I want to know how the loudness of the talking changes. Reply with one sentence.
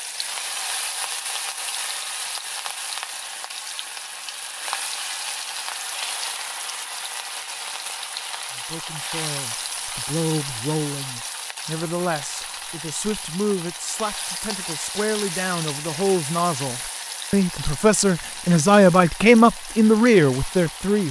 The volume of the talking goes up.